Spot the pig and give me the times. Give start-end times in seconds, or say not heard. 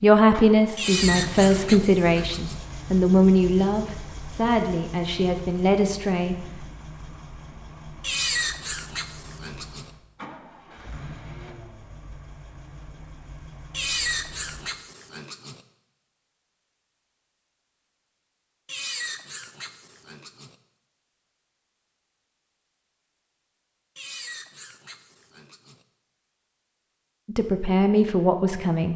0.8-2.6, 8.0-9.9, 13.7-15.6, 18.6-20.6, 23.9-25.8.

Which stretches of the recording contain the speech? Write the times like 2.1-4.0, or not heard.
0.0-6.4, 27.2-28.9.